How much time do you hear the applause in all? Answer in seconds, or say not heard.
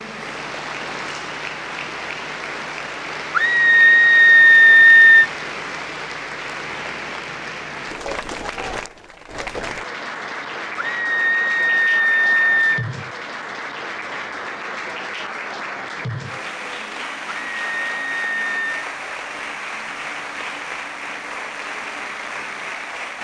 23 s.